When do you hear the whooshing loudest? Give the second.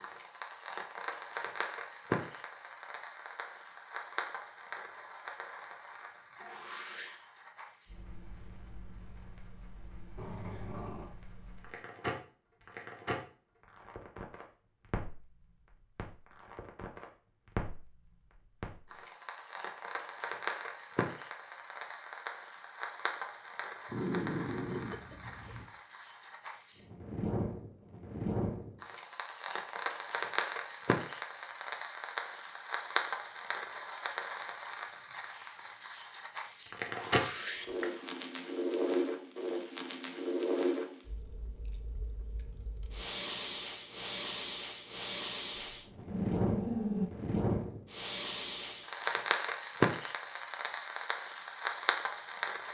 37 s.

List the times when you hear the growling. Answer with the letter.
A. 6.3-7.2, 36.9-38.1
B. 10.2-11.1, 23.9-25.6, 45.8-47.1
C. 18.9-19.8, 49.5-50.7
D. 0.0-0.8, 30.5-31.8
B.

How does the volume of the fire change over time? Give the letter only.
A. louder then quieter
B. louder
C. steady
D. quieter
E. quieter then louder
B.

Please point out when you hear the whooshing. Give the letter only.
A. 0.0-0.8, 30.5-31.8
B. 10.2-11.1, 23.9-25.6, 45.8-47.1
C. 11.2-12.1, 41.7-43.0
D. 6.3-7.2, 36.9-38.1
D.